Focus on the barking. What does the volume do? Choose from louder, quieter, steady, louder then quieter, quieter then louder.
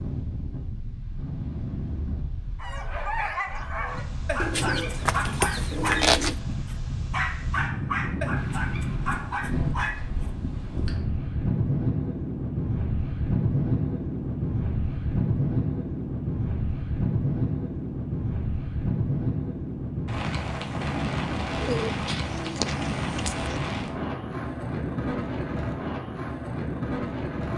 steady.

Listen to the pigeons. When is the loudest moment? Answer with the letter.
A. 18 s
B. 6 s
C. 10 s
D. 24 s
B.